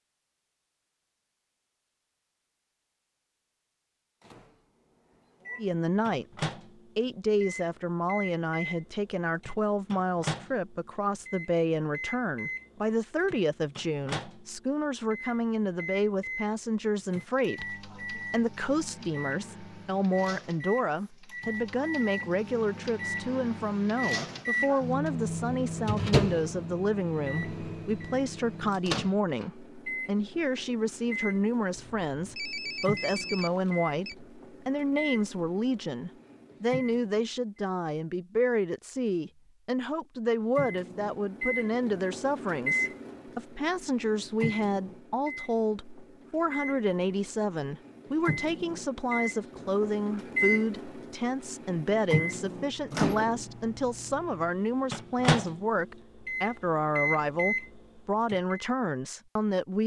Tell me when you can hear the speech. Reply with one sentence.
The speech can be heard from 5.5 to 59.8 s.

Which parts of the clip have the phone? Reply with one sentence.
The phone can be heard from 31.8 to 34.1 s.